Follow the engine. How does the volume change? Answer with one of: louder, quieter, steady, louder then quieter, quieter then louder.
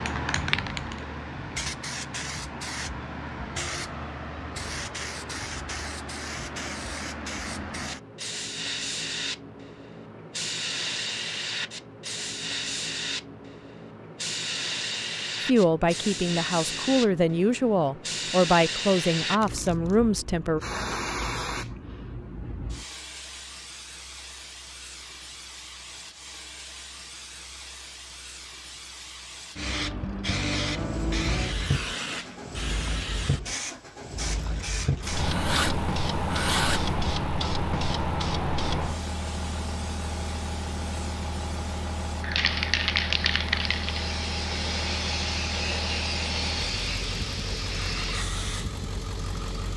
steady.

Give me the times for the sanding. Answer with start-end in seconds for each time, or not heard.
35.0-37.0.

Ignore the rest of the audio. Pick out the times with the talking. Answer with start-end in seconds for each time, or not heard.
15.4-20.6.